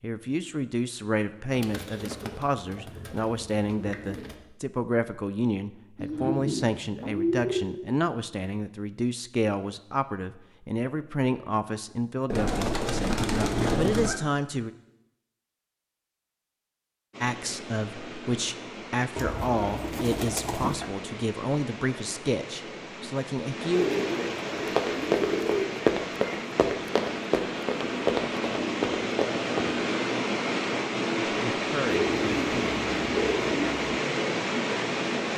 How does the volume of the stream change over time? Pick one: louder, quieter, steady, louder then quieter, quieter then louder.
louder.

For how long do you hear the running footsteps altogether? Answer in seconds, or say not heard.
5 s.